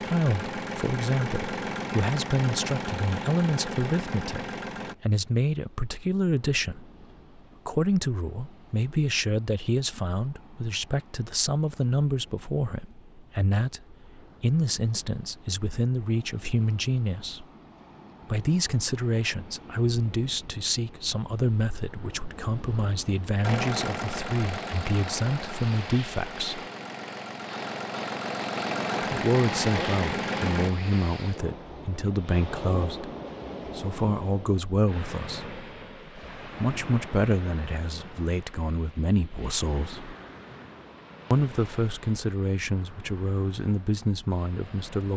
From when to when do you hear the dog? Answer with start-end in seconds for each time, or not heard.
not heard.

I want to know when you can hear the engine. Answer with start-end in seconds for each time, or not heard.
0.0-5.0, 23.4-30.7.